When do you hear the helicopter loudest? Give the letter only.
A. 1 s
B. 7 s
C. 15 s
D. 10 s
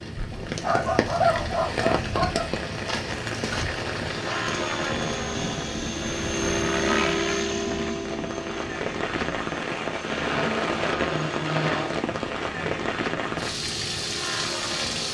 B.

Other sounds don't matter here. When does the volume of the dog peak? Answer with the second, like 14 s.
1 s.